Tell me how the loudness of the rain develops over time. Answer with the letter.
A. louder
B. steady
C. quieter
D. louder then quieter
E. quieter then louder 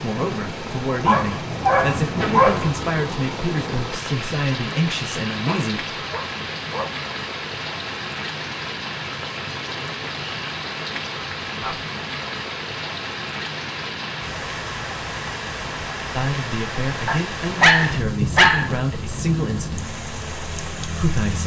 B.